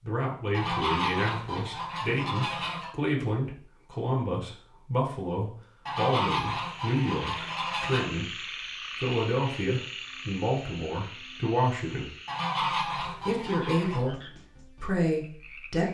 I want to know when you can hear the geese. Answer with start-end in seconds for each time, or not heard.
0.5-2.9, 5.8-8.1, 12.2-14.0.